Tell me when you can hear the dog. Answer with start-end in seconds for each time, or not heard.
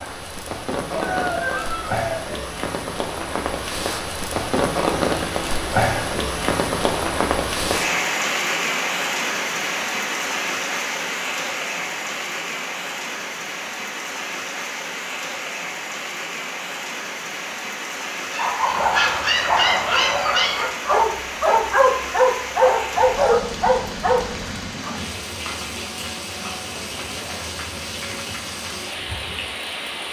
18.3-24.9.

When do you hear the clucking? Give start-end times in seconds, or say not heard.
0.9-2.5.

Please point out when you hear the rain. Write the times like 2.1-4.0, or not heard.
0.0-30.0.